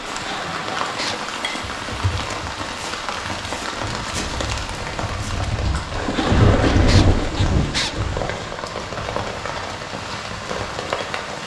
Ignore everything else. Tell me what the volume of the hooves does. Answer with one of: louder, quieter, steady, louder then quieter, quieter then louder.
louder.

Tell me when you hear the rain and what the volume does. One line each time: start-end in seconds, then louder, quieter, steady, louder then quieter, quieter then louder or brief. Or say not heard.
0.0-11.4 steady.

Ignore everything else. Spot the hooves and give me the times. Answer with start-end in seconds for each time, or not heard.
1.6-8.2.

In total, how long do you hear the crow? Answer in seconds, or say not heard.
not heard.